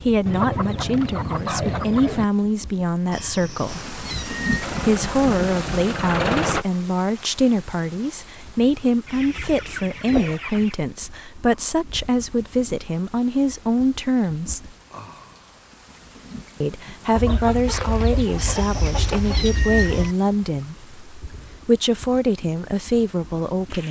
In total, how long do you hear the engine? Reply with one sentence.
The engine can be heard for 2 seconds in total.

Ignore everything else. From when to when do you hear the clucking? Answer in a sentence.
The clucking can be heard from 0.2 to 2.2 s, from 9.1 to 10.8 s and from 17.1 to 20.1 s.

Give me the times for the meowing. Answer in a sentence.
You can hear the meowing from 3.1 to 4.8 s, from 9.1 to 10.3 s and from 18.4 to 20.1 s.